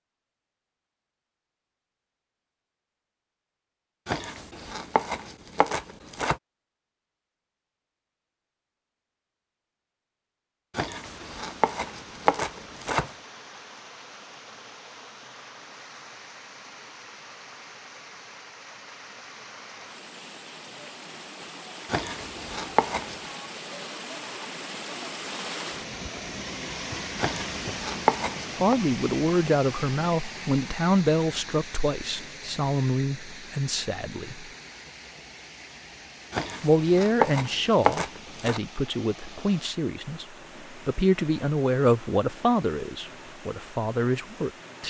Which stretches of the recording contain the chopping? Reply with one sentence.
The chopping can be heard from 4.0 to 6.3 s, from 10.8 to 13.1 s, from 21.9 to 23.1 s, from 27.1 to 28.8 s and from 36.3 to 38.6 s.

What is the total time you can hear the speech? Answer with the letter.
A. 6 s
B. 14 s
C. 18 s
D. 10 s
B.